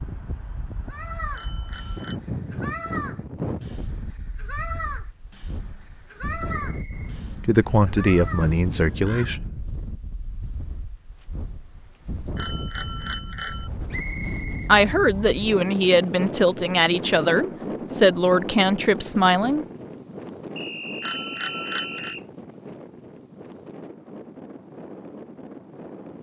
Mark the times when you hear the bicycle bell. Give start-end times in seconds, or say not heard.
1.3-2.2, 12.3-13.7, 21.0-22.1.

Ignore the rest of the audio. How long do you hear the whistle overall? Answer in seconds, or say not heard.
4 s.